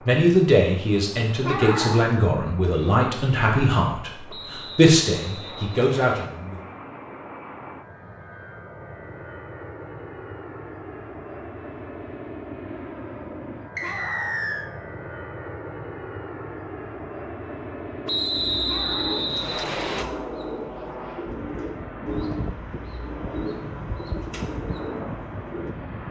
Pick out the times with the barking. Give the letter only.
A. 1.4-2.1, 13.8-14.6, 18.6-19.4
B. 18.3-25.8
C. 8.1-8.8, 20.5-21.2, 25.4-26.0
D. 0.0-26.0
A.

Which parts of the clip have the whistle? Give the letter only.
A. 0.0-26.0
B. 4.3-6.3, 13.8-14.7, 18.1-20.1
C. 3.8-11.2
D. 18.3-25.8
B.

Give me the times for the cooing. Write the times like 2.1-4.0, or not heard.
18.3-25.8.